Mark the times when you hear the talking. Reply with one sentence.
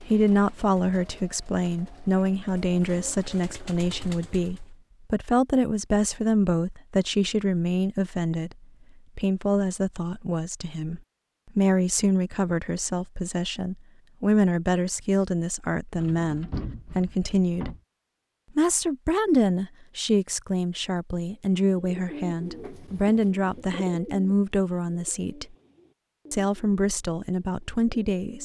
You can hear the talking from 0.1 to 8.6 s, from 9.2 to 17.7 s, from 18.6 to 25.6 s and from 26.3 to 28.4 s.